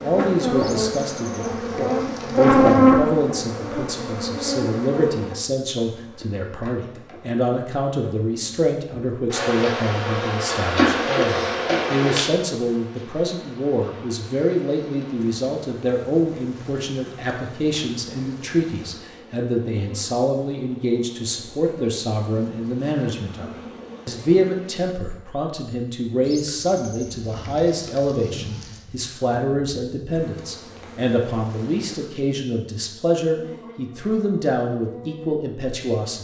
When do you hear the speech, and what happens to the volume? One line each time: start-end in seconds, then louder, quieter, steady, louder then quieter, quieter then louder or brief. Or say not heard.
0.0-36.1 steady.